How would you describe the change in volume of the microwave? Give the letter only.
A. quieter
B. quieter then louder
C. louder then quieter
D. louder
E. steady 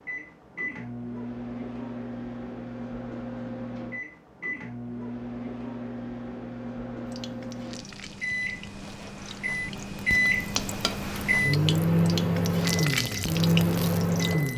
D.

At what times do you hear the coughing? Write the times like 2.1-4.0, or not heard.
not heard.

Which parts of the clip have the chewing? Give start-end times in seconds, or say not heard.
not heard.